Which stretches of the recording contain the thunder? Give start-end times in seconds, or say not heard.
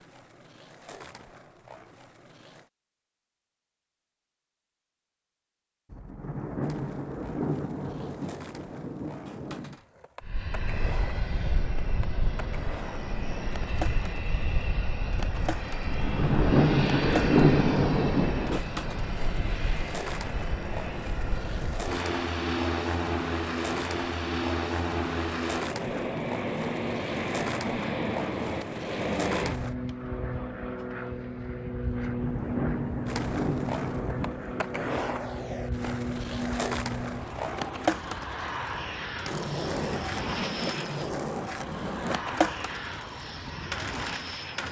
5.9-9.8, 15.8-18.6, 32.0-35.0.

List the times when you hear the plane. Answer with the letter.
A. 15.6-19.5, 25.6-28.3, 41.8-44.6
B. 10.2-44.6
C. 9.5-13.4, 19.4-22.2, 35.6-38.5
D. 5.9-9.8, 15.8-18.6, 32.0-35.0
B.